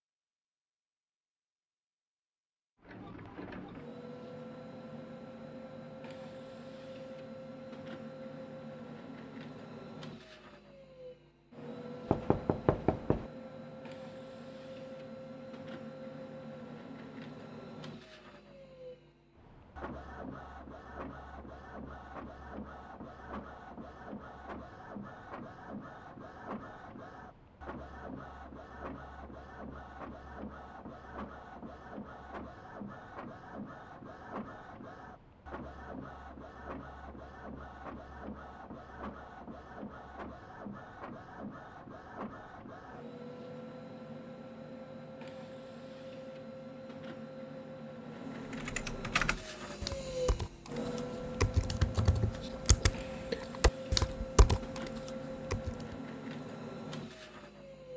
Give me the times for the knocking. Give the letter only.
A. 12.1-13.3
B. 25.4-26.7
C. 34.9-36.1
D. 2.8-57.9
A.